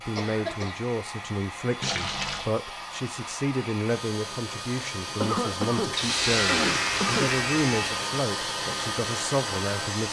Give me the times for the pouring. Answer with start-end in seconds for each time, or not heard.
1.8-2.5, 5.8-7.4.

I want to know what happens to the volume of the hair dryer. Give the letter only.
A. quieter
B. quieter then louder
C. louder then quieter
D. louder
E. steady
D.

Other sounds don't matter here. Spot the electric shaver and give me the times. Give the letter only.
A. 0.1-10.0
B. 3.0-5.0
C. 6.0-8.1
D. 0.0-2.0
C.